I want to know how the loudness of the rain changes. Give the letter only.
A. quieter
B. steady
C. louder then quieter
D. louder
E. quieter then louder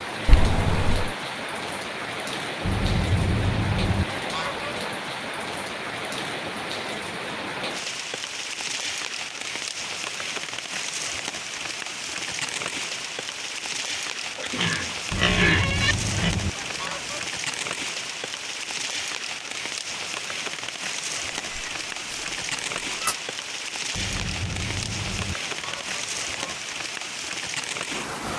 B.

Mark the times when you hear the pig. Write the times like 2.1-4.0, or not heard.
14.3-16.4.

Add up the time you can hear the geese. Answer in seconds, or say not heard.
7 s.